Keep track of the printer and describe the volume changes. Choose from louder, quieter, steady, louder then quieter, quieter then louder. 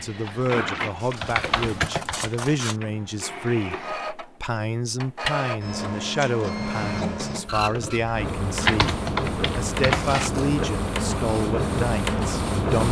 louder.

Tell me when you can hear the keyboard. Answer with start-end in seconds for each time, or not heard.
0.0-2.5, 8.6-10.3.